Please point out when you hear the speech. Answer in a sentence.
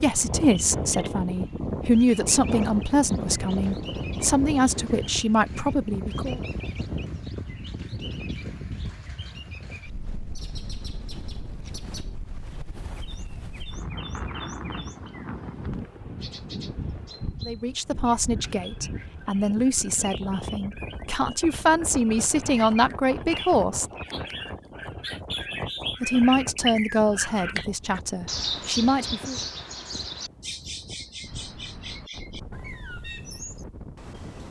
The speech can be heard from 0.0 to 6.4 s, from 17.4 to 23.9 s and from 26.0 to 29.4 s.